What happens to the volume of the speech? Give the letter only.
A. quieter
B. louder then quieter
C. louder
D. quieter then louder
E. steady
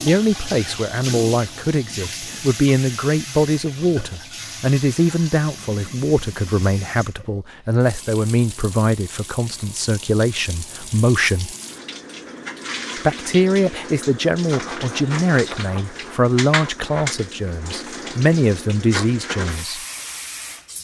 E.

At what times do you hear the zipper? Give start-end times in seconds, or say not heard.
not heard.